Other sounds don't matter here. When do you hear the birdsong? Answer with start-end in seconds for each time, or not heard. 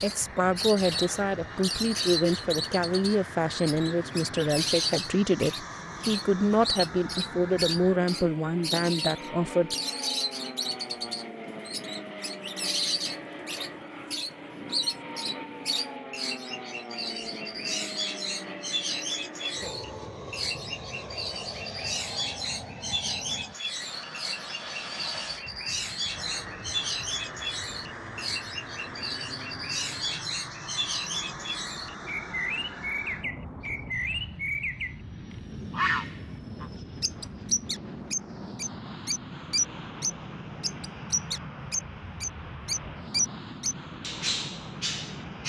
0.0-45.4.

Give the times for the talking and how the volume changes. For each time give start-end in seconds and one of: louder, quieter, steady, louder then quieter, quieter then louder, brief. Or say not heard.
0.0-9.8 steady.